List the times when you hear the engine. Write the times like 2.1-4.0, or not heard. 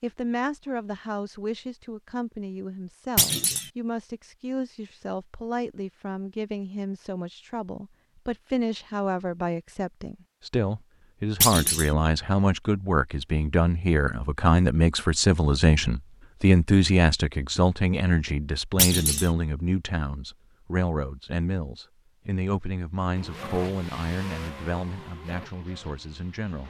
23.1-26.6.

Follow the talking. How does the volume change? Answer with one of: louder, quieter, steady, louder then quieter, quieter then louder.
louder then quieter.